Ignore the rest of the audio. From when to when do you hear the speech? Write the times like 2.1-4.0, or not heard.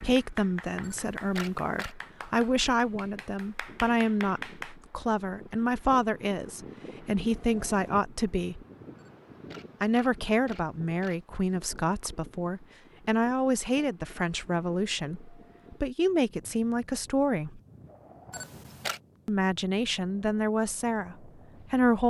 0.0-8.7, 9.8-17.6, 19.2-22.0.